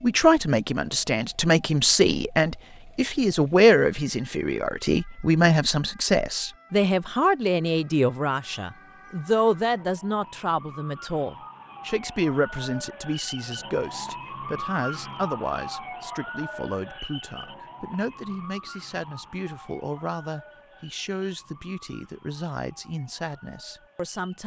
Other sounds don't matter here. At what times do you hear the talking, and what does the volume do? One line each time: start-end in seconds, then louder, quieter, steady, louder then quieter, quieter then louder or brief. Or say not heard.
0.0-24.4 quieter.